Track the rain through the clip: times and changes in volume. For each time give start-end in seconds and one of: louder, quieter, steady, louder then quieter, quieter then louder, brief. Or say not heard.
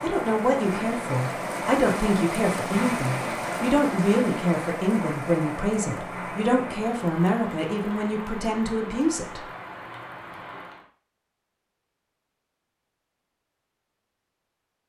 0.0-10.8 quieter.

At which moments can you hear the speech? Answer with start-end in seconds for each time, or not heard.
0.0-9.4.